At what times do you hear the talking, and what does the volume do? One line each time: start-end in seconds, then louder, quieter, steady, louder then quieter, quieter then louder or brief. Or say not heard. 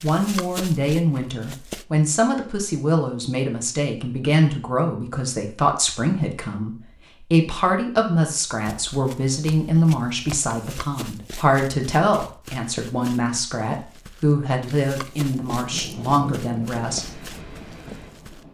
0.0-17.1 steady.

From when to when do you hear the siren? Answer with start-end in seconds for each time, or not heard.
not heard.